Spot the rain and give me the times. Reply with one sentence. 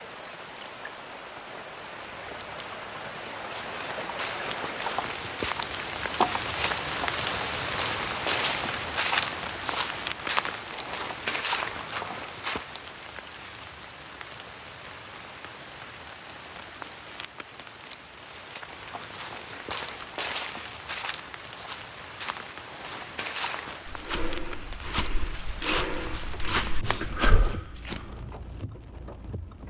You can hear the rain from 0.0 to 29.6 s.